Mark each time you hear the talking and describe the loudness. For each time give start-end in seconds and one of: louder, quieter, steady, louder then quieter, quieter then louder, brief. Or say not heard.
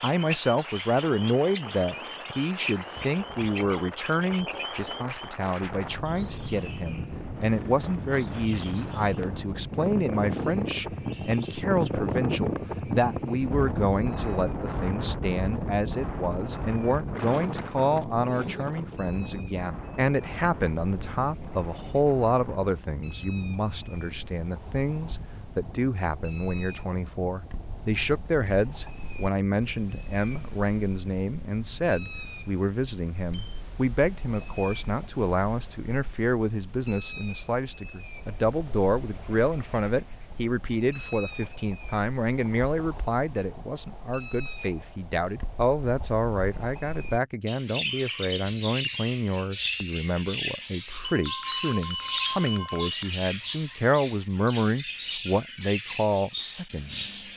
0.0-57.2 steady.